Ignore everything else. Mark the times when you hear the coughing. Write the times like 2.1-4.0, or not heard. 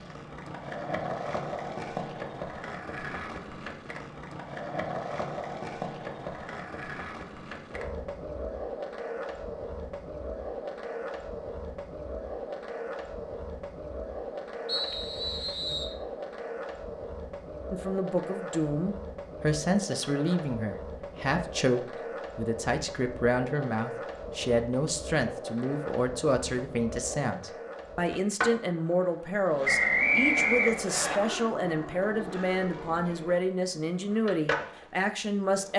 not heard.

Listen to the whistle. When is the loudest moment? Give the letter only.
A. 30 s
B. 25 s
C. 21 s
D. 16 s
A.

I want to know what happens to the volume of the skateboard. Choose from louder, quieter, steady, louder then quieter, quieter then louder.
steady.